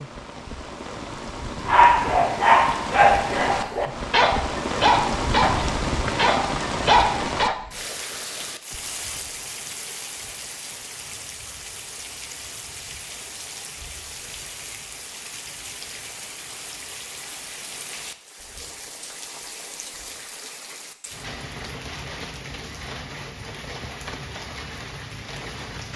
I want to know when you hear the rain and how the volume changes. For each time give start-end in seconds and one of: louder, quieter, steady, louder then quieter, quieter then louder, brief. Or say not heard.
0.0-25.9 quieter.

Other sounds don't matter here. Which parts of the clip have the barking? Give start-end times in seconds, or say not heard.
1.6-7.5.